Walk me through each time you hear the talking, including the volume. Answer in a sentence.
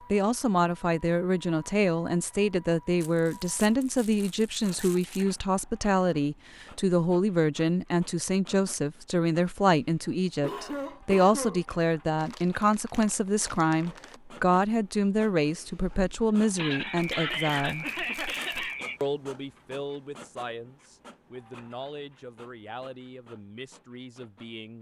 You can hear the talking from 0.1 to 17.9 s, at a steady volume; and from 19.0 to 24.7 s, getting quieter.